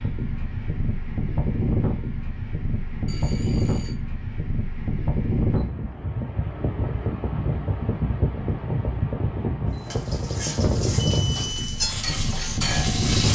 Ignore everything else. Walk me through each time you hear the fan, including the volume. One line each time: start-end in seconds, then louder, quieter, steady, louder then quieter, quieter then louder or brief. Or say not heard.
0.0-13.3 steady.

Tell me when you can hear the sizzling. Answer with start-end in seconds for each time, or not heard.
9.8-13.3.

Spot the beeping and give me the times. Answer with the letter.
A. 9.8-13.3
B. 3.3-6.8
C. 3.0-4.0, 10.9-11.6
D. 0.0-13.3
C.